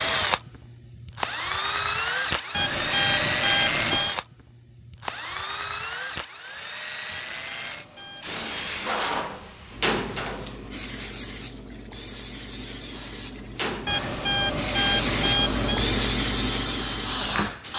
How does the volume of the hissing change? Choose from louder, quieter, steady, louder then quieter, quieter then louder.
louder.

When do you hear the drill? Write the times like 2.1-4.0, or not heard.
0.0-11.1, 12.9-17.7.